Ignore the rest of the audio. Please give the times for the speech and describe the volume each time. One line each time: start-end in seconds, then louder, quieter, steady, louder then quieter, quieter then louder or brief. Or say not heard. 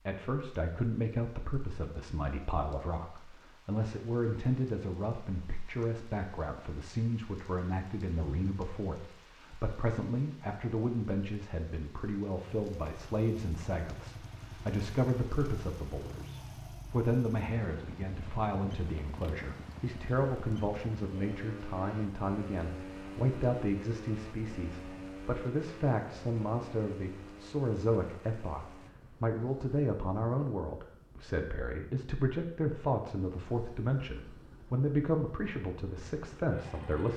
0.1-37.1 steady.